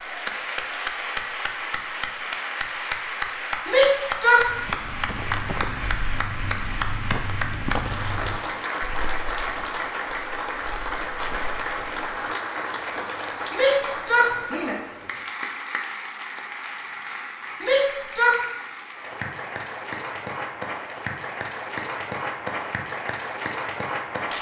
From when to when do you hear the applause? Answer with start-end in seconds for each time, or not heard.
0.0-24.3.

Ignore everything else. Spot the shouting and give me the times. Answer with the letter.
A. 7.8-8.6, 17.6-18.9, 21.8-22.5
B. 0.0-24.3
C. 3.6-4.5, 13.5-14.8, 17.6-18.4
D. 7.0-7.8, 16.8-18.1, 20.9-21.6
C.